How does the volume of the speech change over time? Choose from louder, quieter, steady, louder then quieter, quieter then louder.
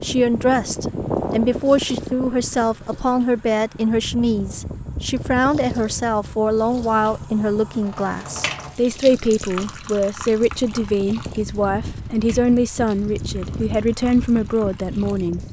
steady.